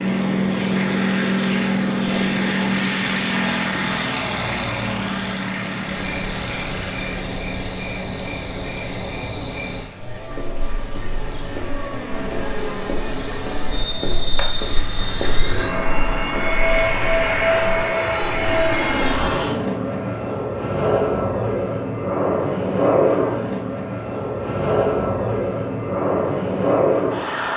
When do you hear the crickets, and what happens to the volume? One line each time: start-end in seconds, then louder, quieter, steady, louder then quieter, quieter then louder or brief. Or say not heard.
0.0-14.3 steady.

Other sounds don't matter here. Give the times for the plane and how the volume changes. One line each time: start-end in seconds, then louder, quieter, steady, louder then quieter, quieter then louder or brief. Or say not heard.
0.0-27.5 quieter then louder.